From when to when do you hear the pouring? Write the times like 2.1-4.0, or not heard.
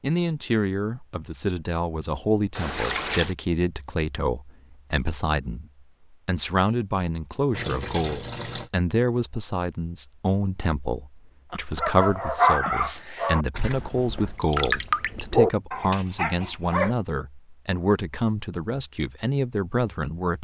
2.5-3.4, 7.5-8.7, 14.2-15.2.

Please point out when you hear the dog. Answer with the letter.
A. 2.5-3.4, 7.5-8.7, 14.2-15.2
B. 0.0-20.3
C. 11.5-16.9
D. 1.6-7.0
C.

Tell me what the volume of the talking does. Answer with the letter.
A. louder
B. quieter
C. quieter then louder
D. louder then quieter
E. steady
E.